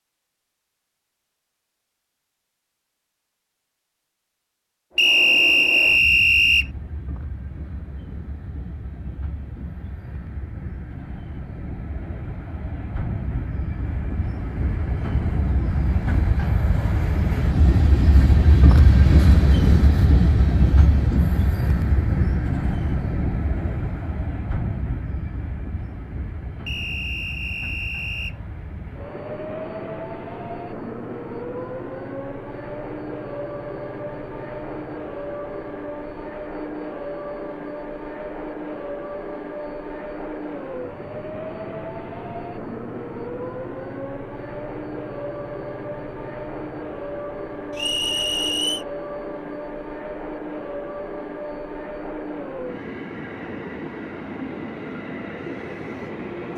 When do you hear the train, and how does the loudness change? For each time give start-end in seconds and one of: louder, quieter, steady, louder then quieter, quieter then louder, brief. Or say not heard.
4.9-56.5 louder then quieter.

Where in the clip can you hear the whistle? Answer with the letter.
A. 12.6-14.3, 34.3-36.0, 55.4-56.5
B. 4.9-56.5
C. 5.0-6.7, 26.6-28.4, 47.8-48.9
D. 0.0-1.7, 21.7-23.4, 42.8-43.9
C.